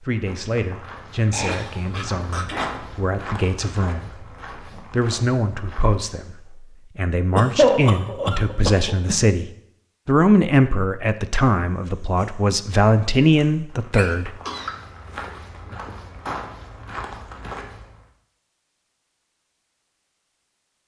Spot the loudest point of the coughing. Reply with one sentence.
The loudest moment of the coughing is at 8 seconds.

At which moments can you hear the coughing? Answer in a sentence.
The coughing can be heard from 1.3 to 2.8 s, from 7.3 to 9.3 s and from 13.9 to 15.6 s.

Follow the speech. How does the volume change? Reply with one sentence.
The loudness of the speech goes up.